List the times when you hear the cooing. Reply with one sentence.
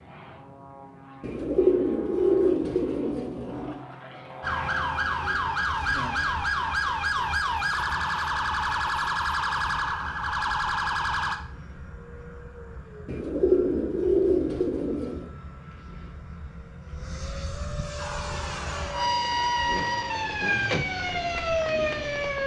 You can hear the cooing from 1.2 to 3.8 s and from 13.1 to 15.3 s.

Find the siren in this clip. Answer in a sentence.
You can hear the siren from 4.4 to 11.4 s and from 17.9 to 22.4 s.